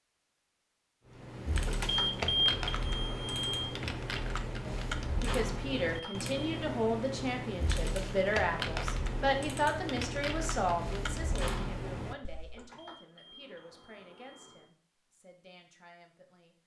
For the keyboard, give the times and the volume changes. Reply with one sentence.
You can hear the keyboard from 1.1 to 12.7 s, at a steady volume.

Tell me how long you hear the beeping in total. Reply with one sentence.
You can hear the beeping for 5 seconds altogether.